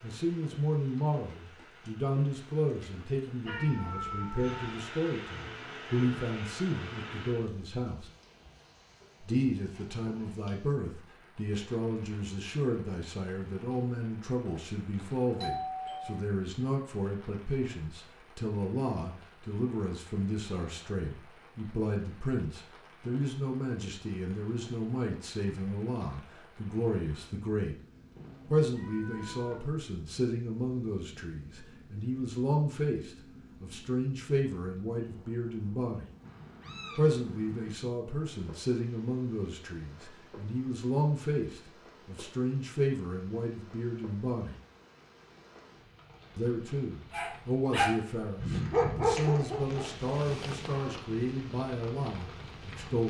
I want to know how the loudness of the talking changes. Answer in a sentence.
The loudness of the talking stays about the same.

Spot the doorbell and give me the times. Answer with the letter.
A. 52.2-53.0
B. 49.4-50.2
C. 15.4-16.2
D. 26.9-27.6
C.